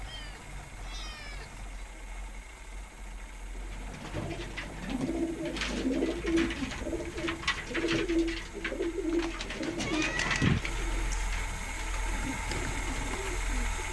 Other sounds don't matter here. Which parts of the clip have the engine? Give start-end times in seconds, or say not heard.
0.0-13.8.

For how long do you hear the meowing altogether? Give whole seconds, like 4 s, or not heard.
5 s.